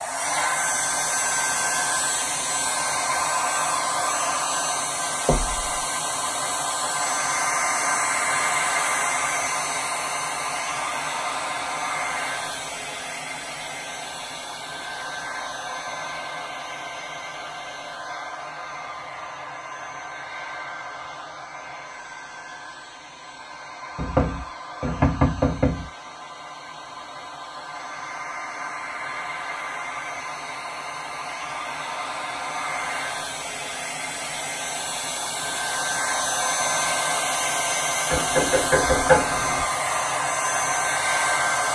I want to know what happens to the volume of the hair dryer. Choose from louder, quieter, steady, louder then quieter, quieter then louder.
quieter then louder.